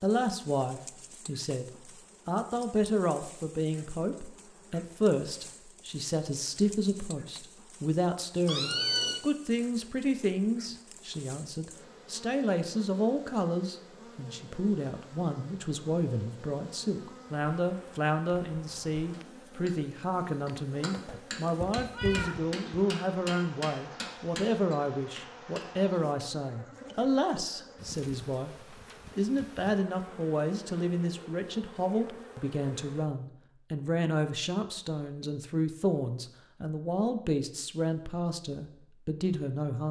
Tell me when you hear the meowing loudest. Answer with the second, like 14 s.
9 s.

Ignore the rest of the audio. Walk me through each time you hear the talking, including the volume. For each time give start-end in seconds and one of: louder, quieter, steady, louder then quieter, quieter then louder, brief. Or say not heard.
0.0-39.8 steady.